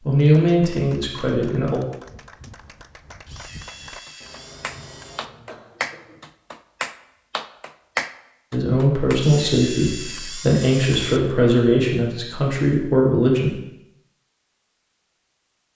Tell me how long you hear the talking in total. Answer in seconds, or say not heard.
7 s.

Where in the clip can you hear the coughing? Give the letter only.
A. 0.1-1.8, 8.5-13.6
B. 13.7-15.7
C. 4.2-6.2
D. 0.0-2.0
C.